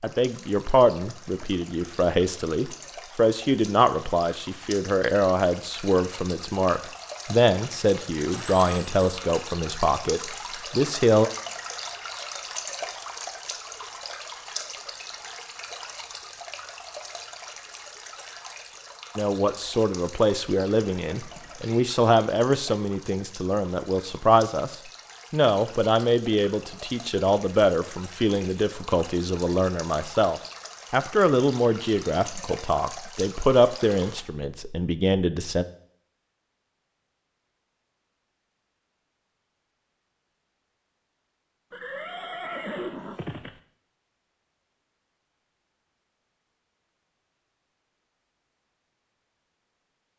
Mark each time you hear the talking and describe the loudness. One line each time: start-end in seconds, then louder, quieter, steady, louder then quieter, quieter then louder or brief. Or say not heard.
0.0-11.3 steady
19.1-35.6 steady.